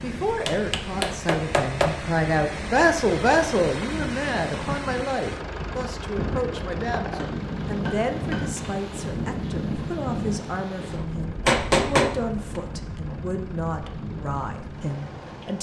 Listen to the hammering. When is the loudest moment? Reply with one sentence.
The volume of the hammering peaks at 12 seconds.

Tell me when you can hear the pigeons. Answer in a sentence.
You can't hear the pigeons here.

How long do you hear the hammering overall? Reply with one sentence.
The hammering can be heard for 5 seconds in total.